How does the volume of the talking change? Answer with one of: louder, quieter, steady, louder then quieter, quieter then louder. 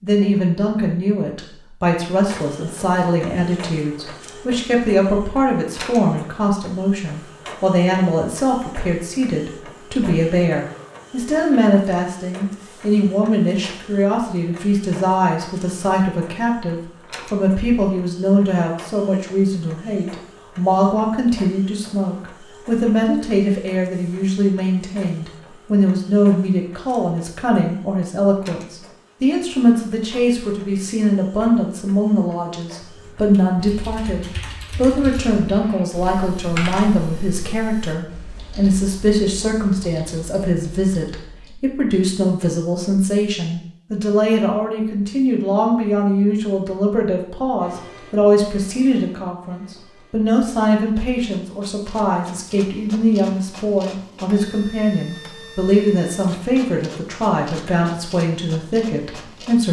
steady.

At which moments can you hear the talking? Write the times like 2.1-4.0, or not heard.
0.0-59.6.